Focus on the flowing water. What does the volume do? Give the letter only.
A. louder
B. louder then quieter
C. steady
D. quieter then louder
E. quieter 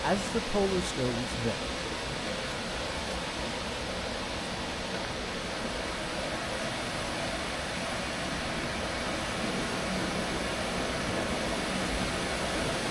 C.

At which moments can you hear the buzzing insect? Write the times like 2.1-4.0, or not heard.
9.4-12.8.